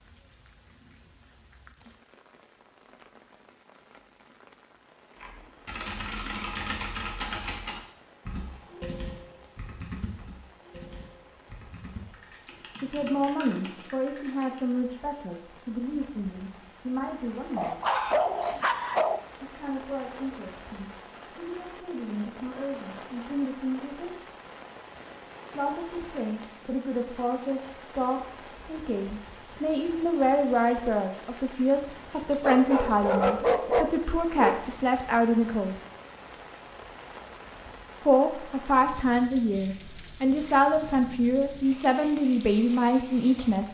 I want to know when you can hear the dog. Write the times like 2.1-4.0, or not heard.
17.6-19.2, 31.9-34.6.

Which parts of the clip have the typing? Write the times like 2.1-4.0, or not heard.
5.2-14.6.